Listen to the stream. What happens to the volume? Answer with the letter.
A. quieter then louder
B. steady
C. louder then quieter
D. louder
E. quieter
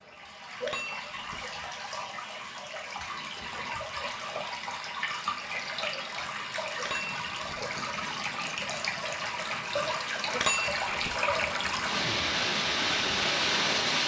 D.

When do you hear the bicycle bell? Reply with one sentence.
You can hear the bicycle bell from 0.6 to 1.4 s, from 6.8 to 7.6 s and from 10.3 to 11.2 s.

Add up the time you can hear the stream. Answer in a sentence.
You can hear the stream for 14 seconds altogether.